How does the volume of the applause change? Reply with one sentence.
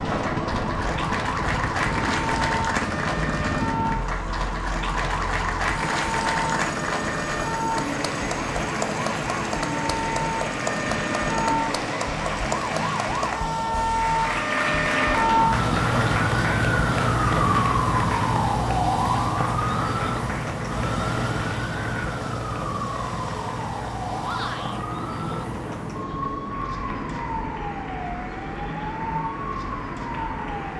The loudness of the applause goes down.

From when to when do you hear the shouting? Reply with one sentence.
You can hear the shouting from 24.2 to 24.8 s.